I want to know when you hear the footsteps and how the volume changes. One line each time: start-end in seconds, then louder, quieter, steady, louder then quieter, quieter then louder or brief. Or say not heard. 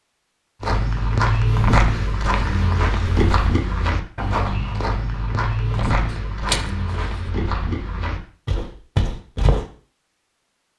0.6-9.7 quieter.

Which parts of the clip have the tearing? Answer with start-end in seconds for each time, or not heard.
5.7-7.2.